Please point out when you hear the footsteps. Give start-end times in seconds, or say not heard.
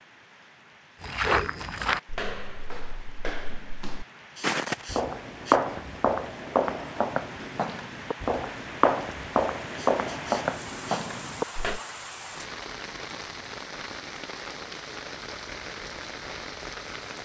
1.0-11.8.